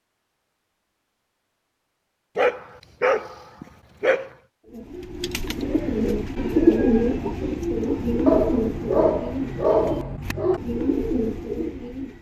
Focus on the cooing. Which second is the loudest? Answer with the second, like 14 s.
7 s.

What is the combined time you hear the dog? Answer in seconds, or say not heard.
4 s.